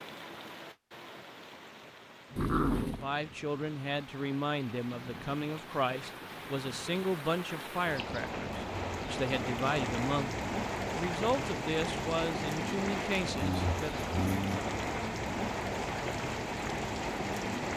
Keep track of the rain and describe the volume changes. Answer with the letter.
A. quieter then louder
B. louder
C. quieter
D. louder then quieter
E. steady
B.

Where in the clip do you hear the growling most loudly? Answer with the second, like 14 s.
3 s.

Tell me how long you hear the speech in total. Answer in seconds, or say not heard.
11 s.